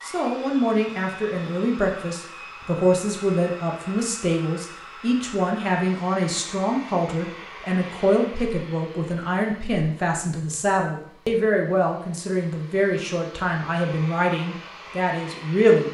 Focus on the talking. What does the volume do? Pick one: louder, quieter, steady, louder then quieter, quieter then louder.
steady.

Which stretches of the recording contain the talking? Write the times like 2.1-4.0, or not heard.
0.0-15.8.